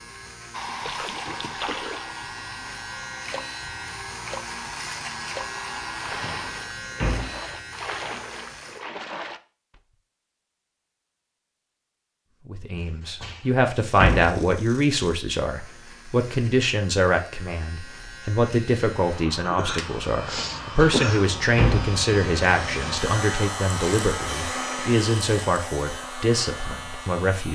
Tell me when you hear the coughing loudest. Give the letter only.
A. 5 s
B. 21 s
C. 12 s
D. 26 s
B.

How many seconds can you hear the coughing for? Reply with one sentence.
The coughing can be heard for 2 seconds in total.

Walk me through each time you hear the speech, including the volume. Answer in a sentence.
The speech can be heard from 12.4 to 27.5 s, at a steady volume.